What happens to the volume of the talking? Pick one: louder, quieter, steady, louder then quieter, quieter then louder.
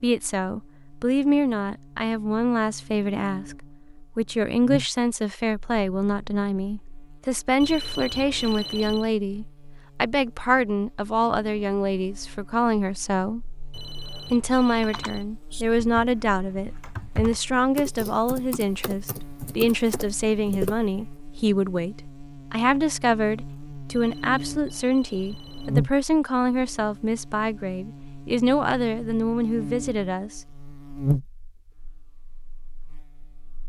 steady.